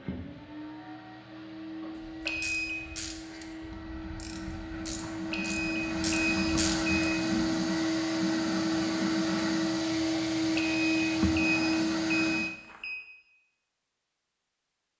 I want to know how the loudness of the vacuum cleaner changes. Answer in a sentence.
The volume of the vacuum cleaner goes up.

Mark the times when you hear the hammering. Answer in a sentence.
The hammering can't be heard in this clip.